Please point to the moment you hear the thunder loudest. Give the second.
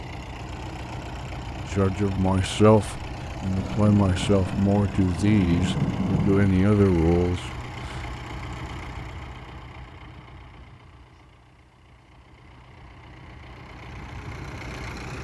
6 s.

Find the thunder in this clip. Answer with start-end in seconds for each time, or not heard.
3.5-6.5.